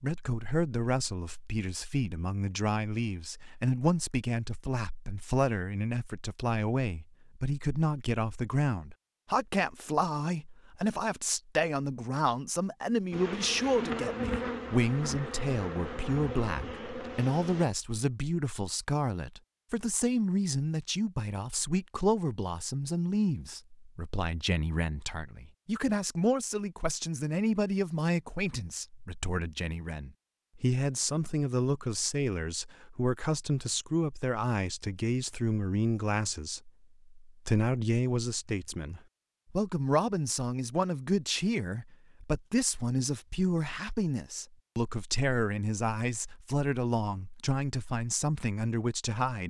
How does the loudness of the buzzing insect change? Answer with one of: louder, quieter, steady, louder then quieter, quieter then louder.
quieter.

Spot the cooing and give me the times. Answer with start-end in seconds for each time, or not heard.
not heard.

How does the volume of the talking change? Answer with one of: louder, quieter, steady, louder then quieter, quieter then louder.
steady.